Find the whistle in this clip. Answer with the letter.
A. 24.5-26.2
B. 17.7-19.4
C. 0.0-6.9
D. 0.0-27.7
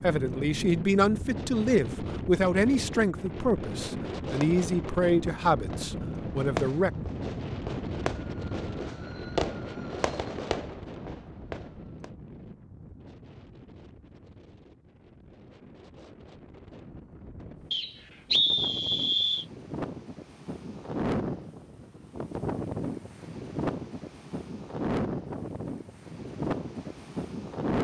B.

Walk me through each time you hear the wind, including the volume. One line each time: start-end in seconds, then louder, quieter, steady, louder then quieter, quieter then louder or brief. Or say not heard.
0.0-27.7 quieter then louder.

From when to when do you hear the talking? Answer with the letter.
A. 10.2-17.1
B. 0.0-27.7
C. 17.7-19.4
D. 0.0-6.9
D.